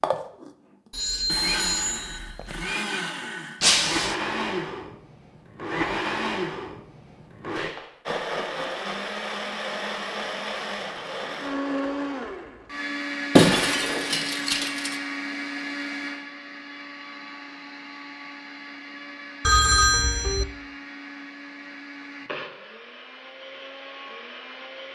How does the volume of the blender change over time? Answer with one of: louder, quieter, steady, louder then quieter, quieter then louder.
quieter.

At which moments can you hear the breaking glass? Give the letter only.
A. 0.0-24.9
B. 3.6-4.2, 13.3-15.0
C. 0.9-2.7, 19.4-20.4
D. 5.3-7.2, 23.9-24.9
B.